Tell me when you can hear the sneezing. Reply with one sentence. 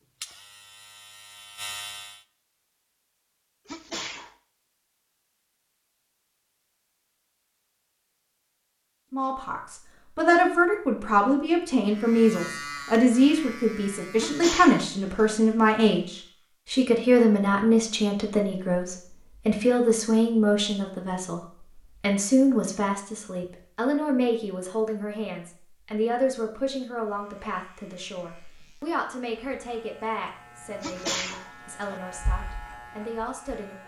The sneezing can be heard from 3.6 to 4.3 s, from 14.2 to 15.3 s and from 30.8 to 32.0 s.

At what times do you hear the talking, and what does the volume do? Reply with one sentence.
The talking can be heard from 9.1 to 33.8 s, getting quieter.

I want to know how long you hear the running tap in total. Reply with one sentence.
You can't hear the running tap here.